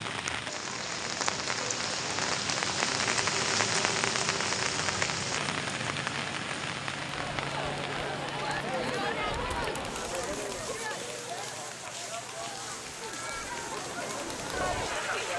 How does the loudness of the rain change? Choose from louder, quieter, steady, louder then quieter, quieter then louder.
quieter.